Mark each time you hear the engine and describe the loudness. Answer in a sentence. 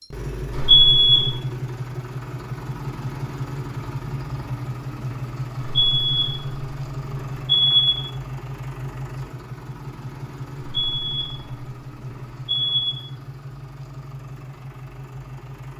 The engine can be heard from 0.0 to 15.7 s, getting quieter.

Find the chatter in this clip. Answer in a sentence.
You can't hear the chatter here.